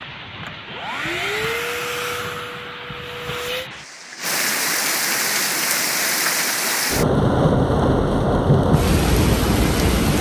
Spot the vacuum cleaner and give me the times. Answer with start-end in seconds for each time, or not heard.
0.0-3.7.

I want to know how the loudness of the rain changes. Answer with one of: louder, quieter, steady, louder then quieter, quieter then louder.
louder.